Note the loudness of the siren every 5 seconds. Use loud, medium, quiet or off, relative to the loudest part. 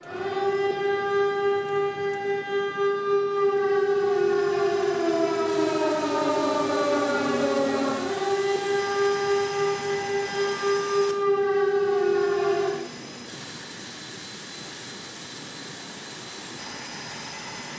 loud, loud, loud, off.